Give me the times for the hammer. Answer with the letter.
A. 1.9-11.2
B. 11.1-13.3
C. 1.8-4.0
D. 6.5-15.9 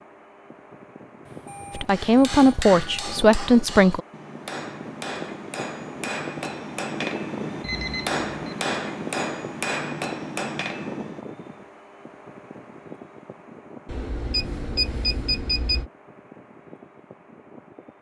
A.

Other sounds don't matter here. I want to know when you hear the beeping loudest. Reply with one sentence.
The volume of the beeping peaks at 15 seconds.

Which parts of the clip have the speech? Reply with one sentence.
The speech can be heard from 1.8 to 4.0 s.